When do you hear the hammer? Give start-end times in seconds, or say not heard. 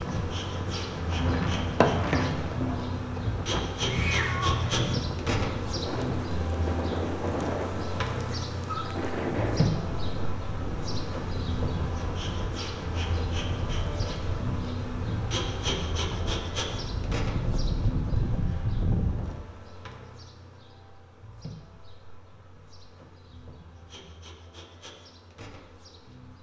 1.1-3.2.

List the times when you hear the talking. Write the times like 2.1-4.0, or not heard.
not heard.